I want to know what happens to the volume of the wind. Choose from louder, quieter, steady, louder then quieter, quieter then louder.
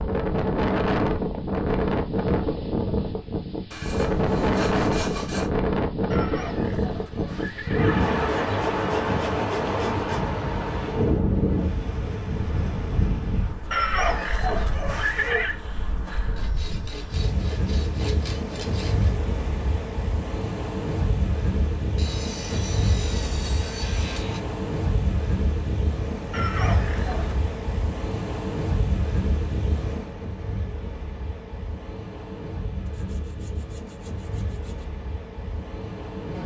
quieter.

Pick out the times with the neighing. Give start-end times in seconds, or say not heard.
6.1-8.1, 13.7-15.6, 26.3-27.4.